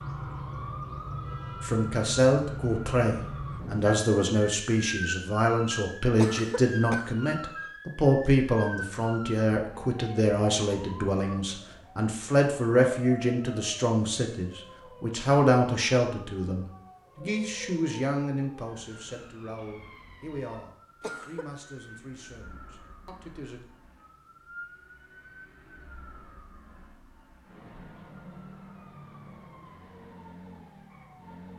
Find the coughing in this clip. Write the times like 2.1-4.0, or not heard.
6.2-7.1, 21.0-21.5.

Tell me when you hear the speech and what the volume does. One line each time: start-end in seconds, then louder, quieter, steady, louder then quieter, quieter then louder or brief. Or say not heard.
1.6-23.6 quieter.